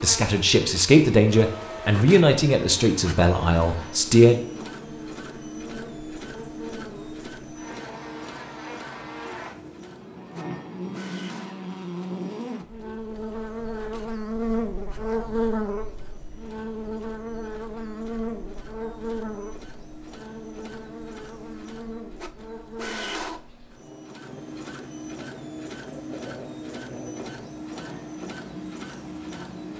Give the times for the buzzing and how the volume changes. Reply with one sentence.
You can hear the buzzing from 0.0 to 29.7 s, getting louder then quieter.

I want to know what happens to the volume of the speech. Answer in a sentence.
The volume of the speech goes down.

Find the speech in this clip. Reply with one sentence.
The speech can be heard from 0.0 to 4.4 s.